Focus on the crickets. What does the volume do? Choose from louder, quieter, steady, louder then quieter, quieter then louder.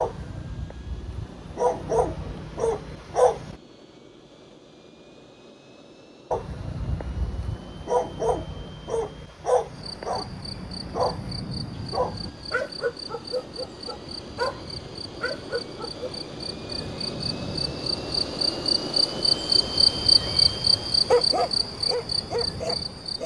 louder.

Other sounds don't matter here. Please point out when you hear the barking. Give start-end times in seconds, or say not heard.
0.0-3.5, 6.3-16.1, 21.1-23.2.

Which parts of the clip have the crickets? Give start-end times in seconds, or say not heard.
9.7-23.2.